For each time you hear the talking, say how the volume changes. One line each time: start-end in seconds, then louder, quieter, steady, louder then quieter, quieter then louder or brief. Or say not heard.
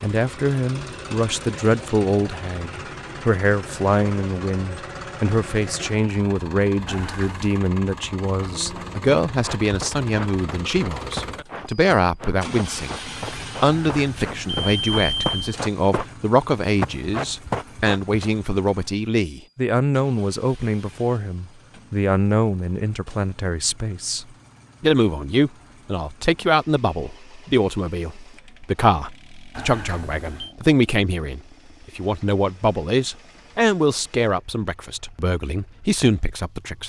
0.0-36.8 steady.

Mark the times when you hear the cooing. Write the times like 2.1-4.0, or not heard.
not heard.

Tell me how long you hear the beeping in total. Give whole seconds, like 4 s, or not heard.
4 s.